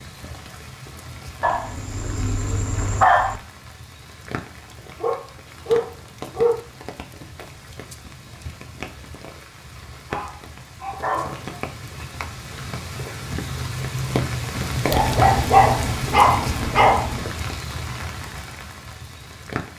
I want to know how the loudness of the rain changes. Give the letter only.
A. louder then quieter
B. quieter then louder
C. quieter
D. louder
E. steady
D.